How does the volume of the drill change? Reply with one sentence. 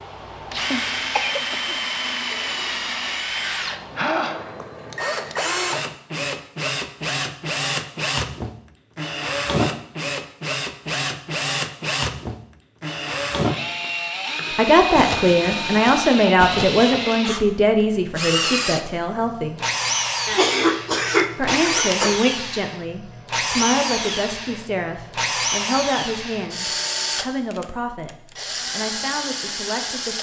The loudness of the drill stays about the same.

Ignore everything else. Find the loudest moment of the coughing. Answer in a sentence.
The volume of the coughing peaks at 21 seconds.